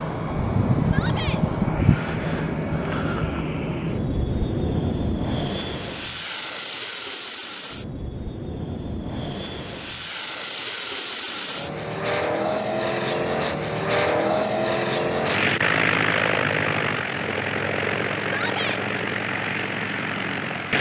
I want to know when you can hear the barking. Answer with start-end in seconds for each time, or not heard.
not heard.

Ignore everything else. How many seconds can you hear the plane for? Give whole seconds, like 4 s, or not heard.
21 s.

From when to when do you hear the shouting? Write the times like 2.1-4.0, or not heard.
0.8-1.4, 18.2-18.8.